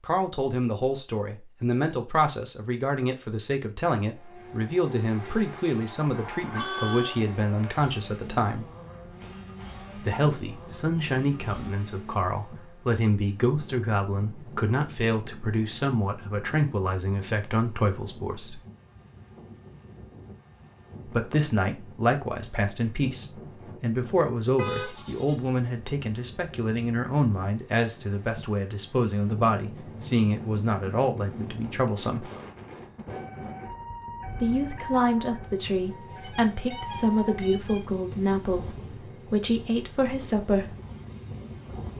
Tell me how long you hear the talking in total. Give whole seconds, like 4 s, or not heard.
35 s.